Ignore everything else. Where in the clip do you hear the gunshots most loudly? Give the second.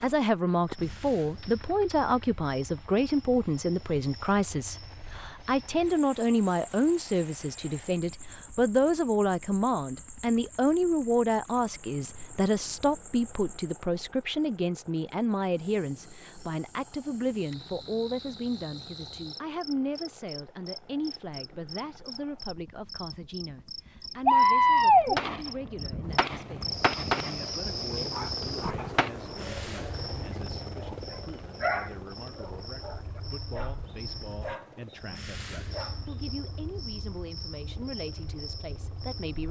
25 s.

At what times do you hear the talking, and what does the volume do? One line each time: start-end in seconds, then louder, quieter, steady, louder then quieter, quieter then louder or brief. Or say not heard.
0.0-39.4 quieter.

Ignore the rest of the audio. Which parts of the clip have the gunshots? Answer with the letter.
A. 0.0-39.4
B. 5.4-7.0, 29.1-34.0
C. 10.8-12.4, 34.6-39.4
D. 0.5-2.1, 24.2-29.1
D.